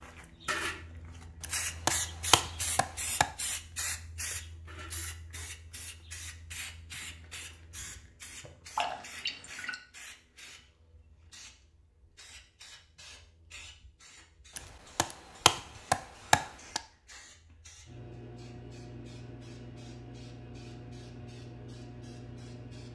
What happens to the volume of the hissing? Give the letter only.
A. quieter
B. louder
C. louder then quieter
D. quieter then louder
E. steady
D.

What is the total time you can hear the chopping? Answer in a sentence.
The chopping can be heard for 4 seconds in total.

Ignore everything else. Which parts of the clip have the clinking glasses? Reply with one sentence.
You can hear the clinking glasses from 8.8 to 9.8 s.